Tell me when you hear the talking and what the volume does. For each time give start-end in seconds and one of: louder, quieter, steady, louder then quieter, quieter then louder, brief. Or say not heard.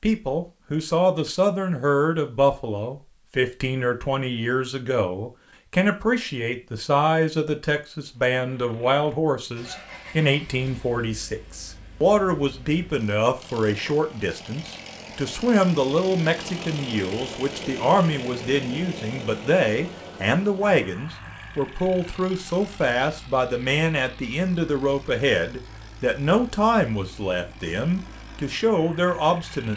0.0-29.7 steady.